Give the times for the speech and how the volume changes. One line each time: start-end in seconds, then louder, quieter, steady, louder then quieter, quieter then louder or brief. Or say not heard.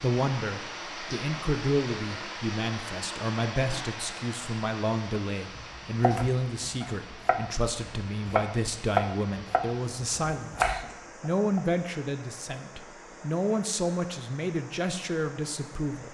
0.0-16.0 steady.